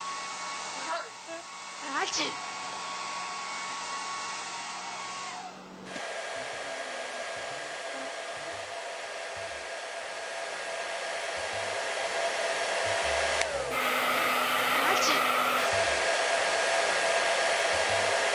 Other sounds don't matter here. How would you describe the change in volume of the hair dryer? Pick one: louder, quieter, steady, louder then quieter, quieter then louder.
louder.